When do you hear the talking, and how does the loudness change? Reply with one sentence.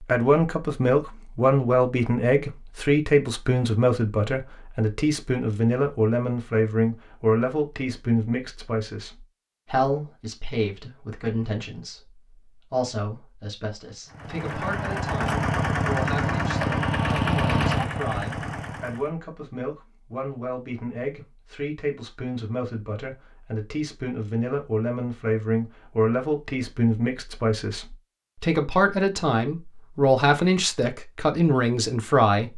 You can hear the talking from 0.0 to 32.5 s, getting quieter then louder.